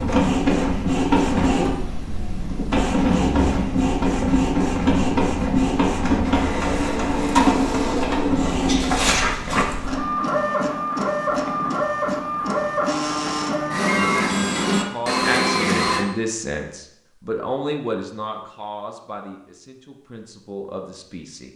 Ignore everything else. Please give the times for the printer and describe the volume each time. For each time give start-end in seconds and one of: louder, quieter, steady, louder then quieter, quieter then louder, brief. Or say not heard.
0.0-16.1 steady.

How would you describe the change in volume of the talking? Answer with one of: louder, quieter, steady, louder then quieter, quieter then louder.
quieter.